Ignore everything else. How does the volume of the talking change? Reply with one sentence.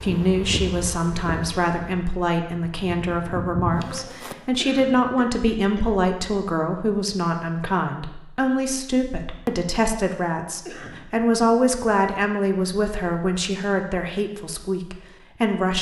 The loudness of the talking stays about the same.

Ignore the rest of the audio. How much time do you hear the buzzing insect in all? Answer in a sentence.
You can hear the buzzing insect for 4 seconds altogether.